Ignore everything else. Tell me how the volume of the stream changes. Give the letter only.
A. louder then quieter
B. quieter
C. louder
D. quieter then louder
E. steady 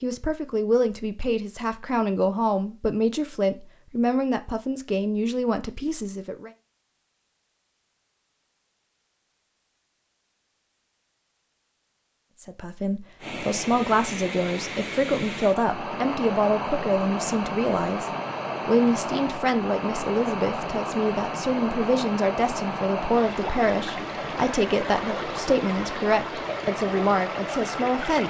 E.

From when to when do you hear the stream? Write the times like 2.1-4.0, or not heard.
13.2-28.2.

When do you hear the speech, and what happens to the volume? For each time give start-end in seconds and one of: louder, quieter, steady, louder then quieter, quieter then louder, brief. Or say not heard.
0.0-6.5 steady
12.4-28.2 steady.